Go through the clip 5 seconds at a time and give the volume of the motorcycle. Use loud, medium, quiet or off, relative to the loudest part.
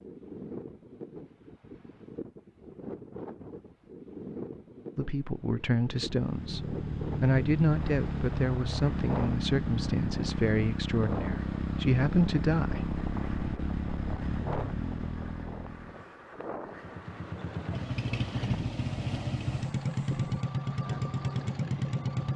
off, loud, loud, loud, loud.